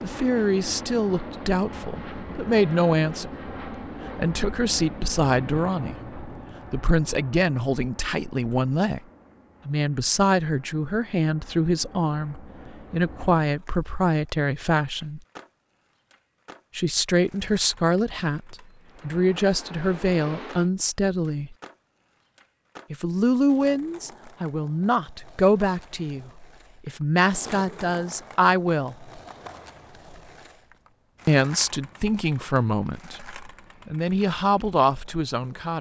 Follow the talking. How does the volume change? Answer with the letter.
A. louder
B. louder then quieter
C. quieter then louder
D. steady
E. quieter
D.